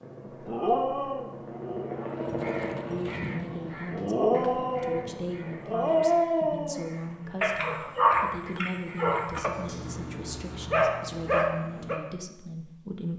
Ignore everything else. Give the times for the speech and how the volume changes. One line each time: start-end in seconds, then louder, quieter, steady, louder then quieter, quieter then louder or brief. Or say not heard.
2.8-13.1 steady.